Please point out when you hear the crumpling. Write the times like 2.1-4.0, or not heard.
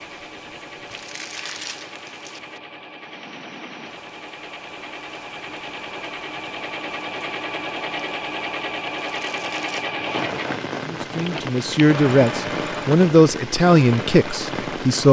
0.8-2.4, 8.9-9.9.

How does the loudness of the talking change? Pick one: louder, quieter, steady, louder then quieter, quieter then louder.
louder then quieter.